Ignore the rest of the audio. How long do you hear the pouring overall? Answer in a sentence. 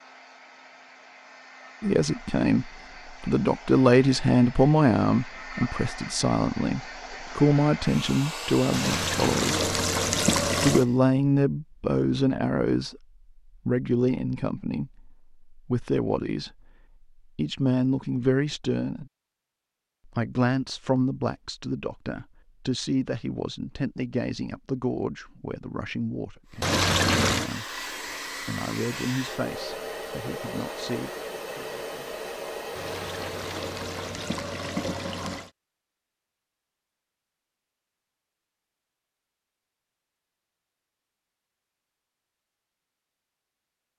The pouring can be heard for 6 seconds in total.